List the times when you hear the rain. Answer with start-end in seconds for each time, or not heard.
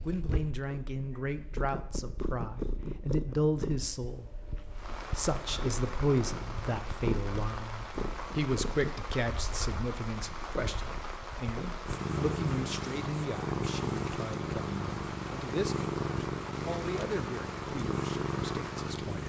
4.7-19.2.